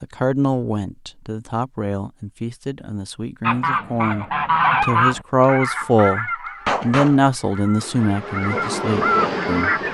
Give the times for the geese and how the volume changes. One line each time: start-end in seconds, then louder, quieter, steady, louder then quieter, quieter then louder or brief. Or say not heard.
3.4-9.9 quieter then louder.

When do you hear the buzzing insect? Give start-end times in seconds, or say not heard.
7.8-9.9.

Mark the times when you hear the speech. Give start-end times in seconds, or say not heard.
0.0-9.9.